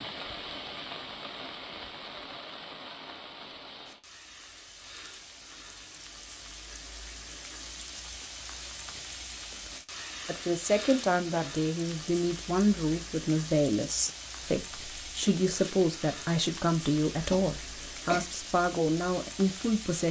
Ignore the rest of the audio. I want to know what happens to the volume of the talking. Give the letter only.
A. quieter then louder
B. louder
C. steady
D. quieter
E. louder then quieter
C.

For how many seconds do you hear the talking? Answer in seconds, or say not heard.
10 s.